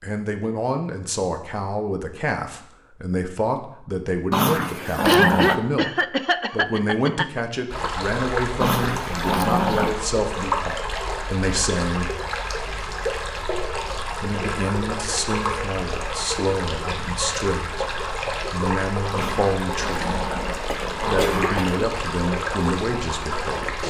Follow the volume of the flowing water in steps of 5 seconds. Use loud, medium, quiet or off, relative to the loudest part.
off, loud, loud, loud, loud.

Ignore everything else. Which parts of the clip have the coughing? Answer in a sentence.
The coughing can be heard from 5.0 to 7.4 s and from 20.6 to 21.8 s.